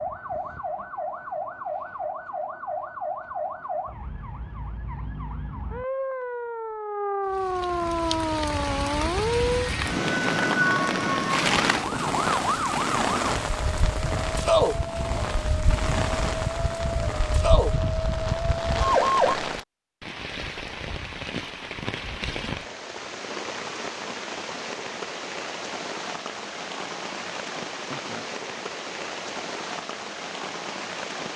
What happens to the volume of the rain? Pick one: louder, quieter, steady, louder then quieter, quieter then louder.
quieter.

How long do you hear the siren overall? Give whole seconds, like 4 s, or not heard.
19 s.